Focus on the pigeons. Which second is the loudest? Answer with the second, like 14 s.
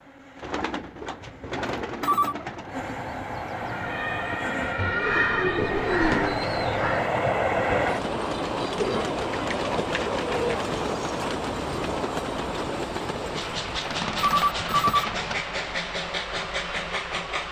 6 s.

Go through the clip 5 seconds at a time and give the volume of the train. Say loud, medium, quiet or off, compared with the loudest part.
medium, loud, loud, loud.